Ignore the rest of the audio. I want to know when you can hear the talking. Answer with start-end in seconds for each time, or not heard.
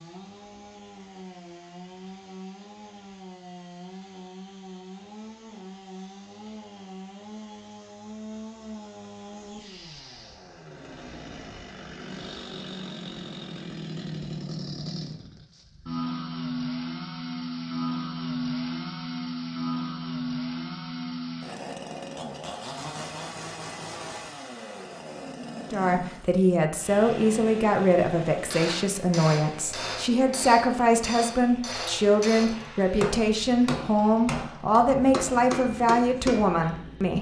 25.7-37.1.